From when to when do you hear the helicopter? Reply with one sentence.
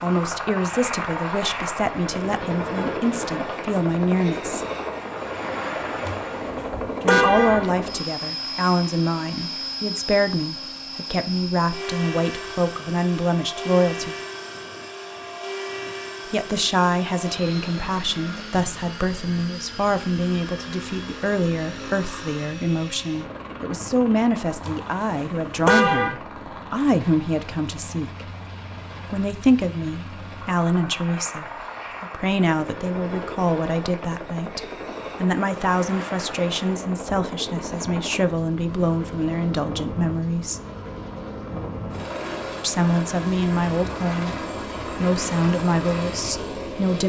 You can hear the helicopter from 0.0 to 47.0 s.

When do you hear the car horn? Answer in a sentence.
The car horn can be heard from 6.0 to 7.8 s and from 24.6 to 26.1 s.